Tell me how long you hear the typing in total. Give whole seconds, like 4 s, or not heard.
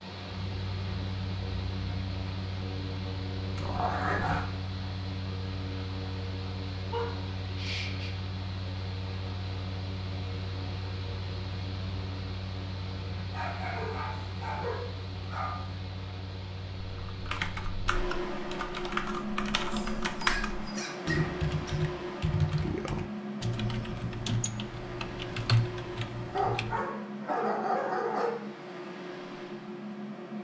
10 s.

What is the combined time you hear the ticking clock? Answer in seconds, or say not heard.
not heard.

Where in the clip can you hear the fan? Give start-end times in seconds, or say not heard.
0.0-30.3.